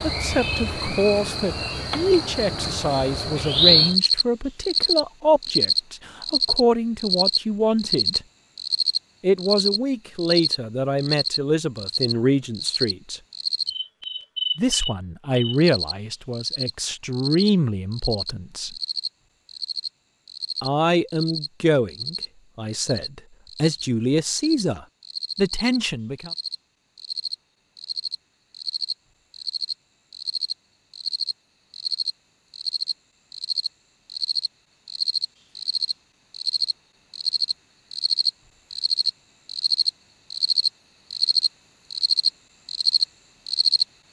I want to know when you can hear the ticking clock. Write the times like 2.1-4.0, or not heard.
not heard.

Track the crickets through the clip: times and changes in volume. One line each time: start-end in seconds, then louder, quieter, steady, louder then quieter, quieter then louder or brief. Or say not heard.
0.0-43.9 quieter then louder.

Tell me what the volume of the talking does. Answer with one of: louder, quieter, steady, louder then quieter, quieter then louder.
steady.